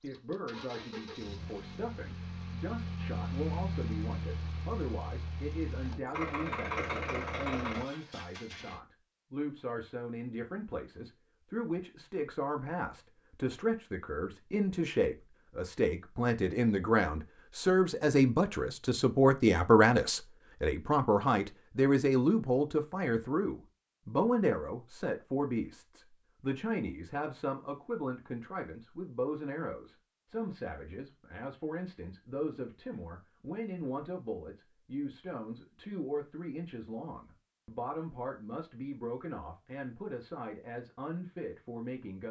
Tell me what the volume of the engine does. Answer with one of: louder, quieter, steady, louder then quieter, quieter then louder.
louder.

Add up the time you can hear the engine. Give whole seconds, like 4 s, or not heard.
9 s.